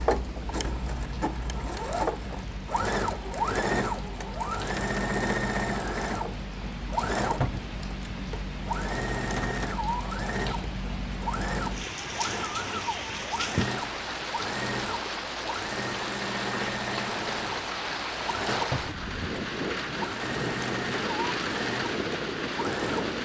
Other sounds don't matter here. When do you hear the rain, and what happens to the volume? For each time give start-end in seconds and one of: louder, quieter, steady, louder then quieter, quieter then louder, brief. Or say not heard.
0.0-23.1 louder.